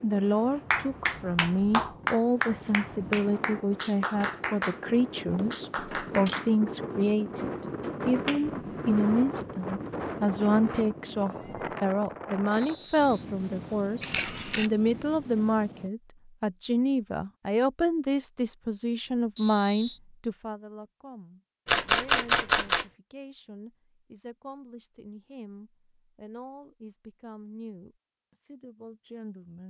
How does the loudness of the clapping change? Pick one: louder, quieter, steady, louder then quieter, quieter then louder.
quieter.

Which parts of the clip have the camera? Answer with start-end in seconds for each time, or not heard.
5.3-6.5, 14.0-14.7, 21.6-22.9.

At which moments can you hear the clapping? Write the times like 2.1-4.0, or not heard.
0.7-4.8, 5.5-8.5.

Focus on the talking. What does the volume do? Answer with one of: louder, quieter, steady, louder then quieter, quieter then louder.
quieter.